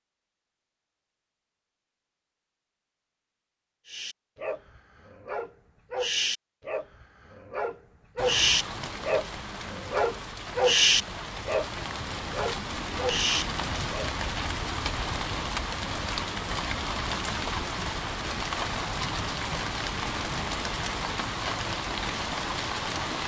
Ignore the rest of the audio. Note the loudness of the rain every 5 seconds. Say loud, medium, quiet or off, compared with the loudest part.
off, medium, loud, loud, loud.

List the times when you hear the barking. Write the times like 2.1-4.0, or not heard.
3.9-14.1.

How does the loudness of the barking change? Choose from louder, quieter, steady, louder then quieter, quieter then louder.
louder then quieter.